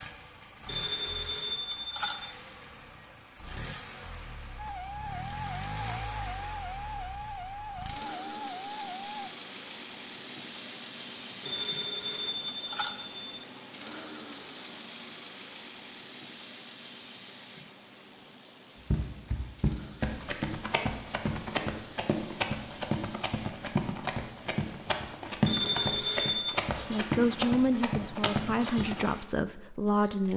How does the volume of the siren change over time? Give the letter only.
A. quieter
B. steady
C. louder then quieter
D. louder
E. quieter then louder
B.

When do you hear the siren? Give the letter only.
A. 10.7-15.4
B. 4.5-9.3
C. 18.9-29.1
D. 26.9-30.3
B.